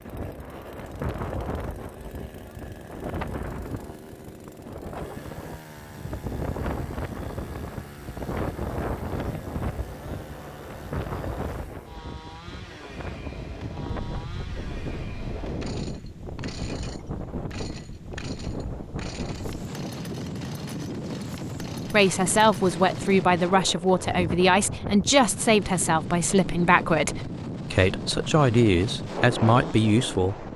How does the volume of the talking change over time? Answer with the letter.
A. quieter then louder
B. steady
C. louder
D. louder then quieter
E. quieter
B.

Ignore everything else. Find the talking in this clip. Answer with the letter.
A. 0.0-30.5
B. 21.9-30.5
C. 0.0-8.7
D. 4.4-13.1
B.